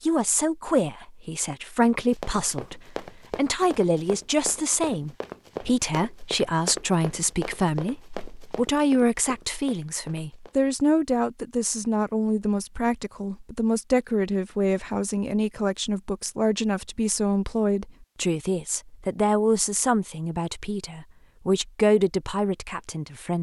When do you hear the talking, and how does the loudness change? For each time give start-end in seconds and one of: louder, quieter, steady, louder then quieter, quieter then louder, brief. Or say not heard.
0.0-23.3 steady.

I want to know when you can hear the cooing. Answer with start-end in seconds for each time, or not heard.
not heard.